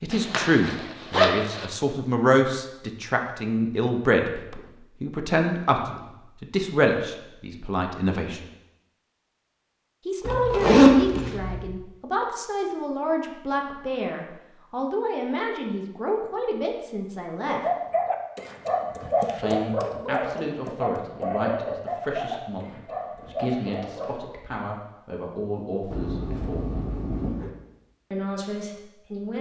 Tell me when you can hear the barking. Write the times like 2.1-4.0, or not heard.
17.4-24.4.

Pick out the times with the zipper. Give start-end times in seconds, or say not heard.
0.1-1.6, 10.2-11.7, 25.9-27.5.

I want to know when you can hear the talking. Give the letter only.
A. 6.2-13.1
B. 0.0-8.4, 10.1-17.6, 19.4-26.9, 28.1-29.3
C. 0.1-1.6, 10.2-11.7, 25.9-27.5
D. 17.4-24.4
B.